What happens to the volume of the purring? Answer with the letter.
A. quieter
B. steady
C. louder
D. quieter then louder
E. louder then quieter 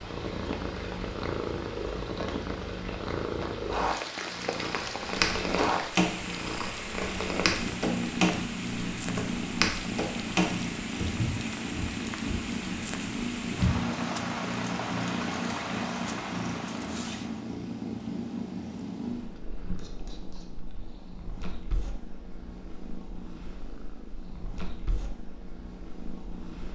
A.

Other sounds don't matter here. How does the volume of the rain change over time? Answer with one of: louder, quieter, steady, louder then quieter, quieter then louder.
louder.